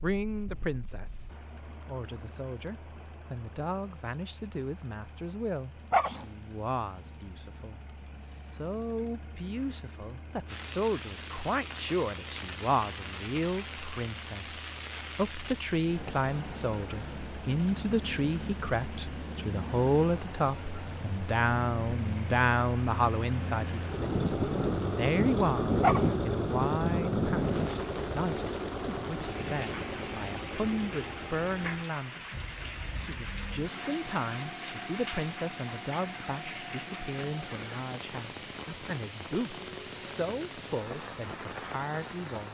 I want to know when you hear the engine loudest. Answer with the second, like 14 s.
26 s.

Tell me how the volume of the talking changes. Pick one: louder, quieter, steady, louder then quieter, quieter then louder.
louder then quieter.